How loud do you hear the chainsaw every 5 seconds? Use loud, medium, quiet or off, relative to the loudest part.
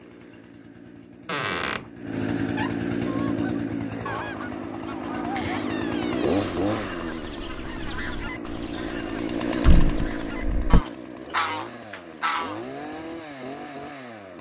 loud, loud, medium.